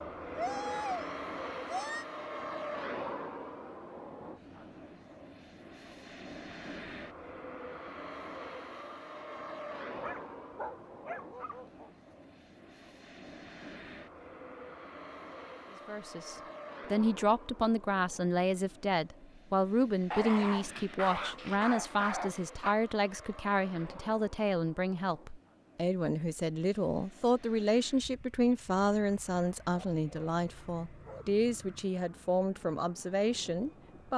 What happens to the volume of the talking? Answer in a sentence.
The volume of the talking stays about the same.